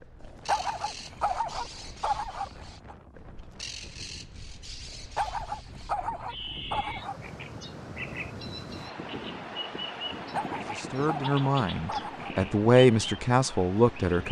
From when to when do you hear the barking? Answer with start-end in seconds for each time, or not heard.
0.2-3.0, 5.2-7.6, 10.3-12.3.